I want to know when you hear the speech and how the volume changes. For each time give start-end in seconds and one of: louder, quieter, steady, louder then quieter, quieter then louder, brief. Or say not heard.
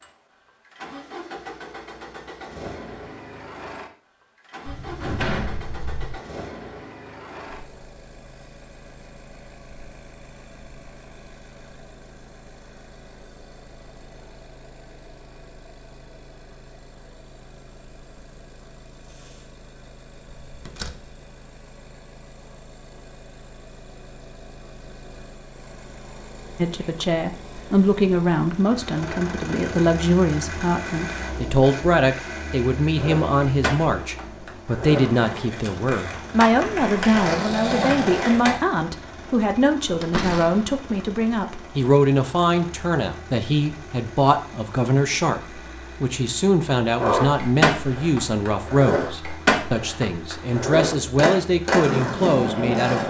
26.6-53.0 steady.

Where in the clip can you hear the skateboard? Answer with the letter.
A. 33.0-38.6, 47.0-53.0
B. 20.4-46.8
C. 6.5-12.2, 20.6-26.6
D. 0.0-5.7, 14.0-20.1
A.